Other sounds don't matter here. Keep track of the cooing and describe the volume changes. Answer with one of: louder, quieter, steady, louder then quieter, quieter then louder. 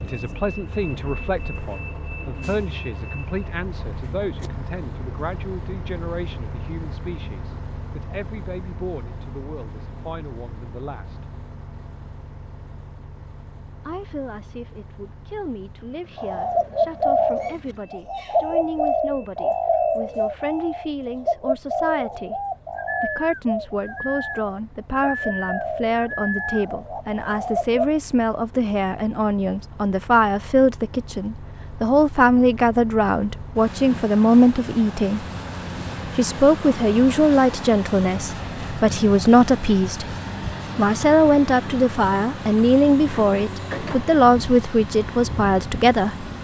quieter.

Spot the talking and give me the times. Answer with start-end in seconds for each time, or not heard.
0.0-11.2, 13.8-22.4, 23.0-35.2, 36.1-40.1, 40.8-46.2.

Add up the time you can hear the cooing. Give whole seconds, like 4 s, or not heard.
12 s.